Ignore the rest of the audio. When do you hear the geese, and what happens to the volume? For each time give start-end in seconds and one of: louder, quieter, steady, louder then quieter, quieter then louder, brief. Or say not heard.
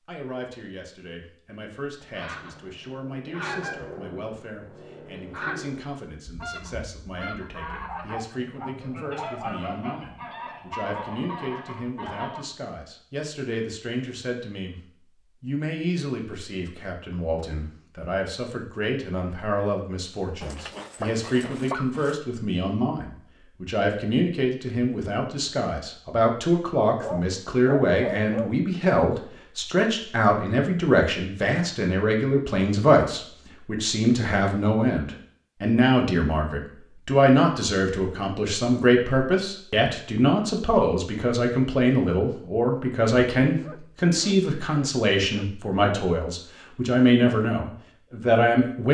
2.0-12.4 steady.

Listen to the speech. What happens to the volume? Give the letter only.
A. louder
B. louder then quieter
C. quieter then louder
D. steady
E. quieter
A.